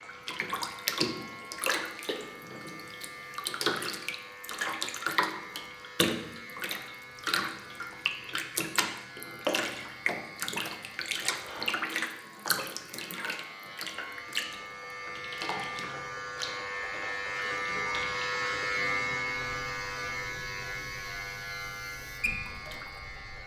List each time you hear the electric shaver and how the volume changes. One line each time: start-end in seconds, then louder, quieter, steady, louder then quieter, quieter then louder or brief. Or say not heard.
0.0-23.4 louder.